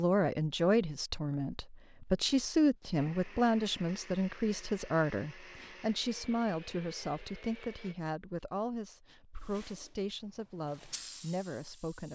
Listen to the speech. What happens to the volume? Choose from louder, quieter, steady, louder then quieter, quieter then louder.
quieter.